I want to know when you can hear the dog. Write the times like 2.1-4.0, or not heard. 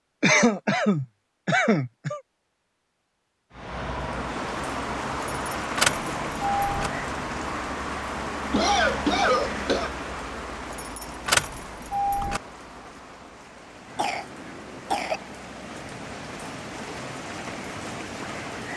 not heard.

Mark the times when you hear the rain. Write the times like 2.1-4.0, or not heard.
4.0-18.7.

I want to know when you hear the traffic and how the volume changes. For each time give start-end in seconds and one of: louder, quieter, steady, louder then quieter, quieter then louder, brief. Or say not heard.
3.5-18.7 quieter.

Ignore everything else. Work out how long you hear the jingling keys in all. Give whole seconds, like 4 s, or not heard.
3 s.